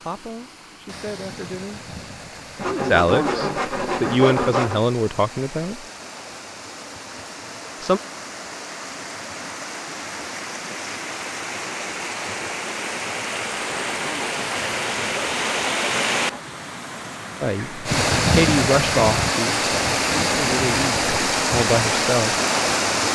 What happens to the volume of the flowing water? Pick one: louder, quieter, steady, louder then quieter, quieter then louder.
louder.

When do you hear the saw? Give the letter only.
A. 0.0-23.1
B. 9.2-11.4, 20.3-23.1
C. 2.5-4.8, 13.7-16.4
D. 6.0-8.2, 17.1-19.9
C.